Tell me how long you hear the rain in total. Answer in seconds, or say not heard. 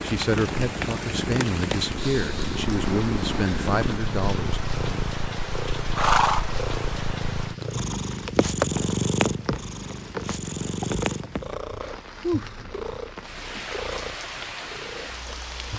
16 s.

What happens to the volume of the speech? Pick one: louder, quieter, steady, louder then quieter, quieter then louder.
steady.